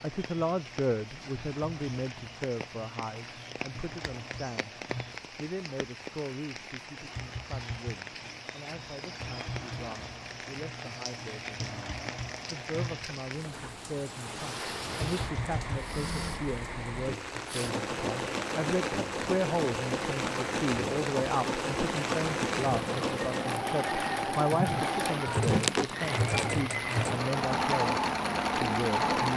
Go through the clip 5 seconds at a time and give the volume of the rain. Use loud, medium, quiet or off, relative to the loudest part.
medium, medium, medium, loud, loud, loud.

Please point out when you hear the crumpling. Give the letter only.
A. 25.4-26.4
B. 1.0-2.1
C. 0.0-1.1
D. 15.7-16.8
A.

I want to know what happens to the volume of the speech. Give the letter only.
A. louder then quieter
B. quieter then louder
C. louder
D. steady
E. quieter
B.